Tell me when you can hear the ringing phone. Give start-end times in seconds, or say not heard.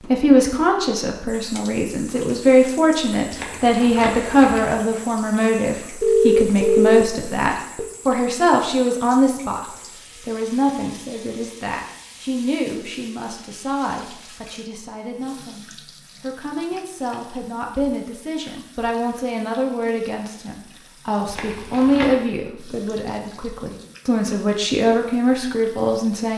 6.0-7.8.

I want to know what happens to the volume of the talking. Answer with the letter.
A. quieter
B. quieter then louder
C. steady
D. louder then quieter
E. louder
B.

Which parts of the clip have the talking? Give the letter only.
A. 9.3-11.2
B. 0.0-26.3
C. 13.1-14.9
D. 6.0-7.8
B.